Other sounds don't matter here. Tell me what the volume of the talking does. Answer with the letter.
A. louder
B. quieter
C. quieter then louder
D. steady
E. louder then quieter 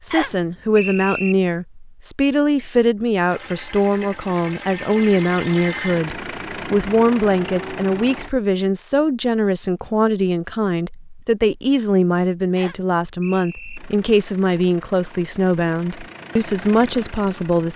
D.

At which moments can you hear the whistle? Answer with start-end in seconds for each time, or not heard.
0.1-1.4, 12.6-13.8.